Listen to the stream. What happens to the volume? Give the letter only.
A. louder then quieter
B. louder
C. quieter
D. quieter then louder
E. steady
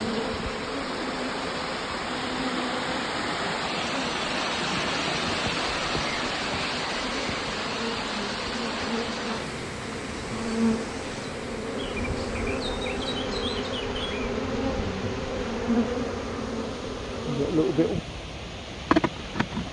C.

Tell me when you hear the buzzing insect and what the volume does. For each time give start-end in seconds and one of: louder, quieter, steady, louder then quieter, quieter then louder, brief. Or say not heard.
0.0-19.6 louder.